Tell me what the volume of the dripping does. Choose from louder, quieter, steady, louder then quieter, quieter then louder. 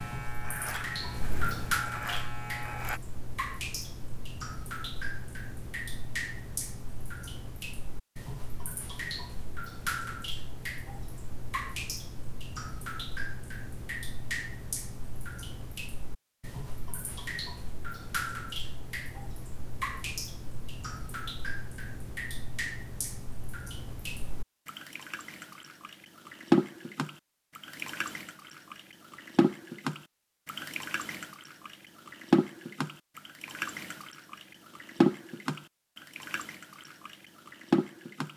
louder.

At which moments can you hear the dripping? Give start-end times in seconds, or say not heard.
0.0-38.3.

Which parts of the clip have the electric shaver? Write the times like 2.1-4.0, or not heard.
0.0-3.0.